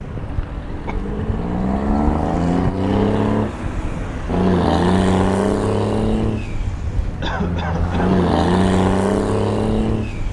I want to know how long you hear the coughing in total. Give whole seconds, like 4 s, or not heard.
2 s.